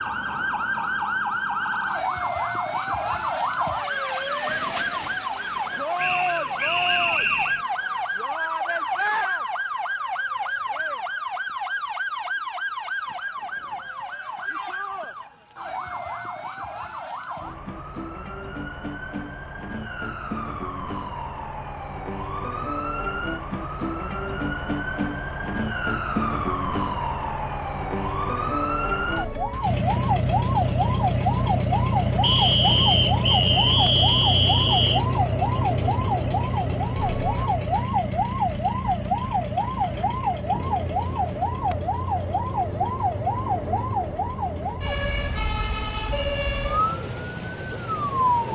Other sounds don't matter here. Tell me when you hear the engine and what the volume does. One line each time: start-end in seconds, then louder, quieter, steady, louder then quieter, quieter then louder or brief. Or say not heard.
29.6-48.5 quieter.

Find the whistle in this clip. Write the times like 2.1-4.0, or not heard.
6.0-7.7, 32.2-35.0.